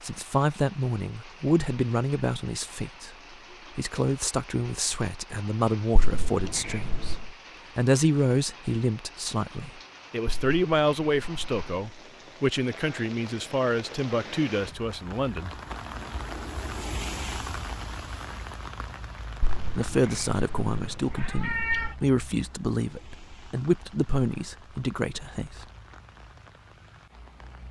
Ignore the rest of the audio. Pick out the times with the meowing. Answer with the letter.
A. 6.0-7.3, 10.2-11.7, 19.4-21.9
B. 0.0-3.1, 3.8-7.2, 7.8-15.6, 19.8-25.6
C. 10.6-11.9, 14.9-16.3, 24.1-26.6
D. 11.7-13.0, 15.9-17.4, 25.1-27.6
A.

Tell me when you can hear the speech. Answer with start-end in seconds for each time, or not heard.
0.0-3.1, 3.8-7.2, 7.8-15.6, 19.8-25.6.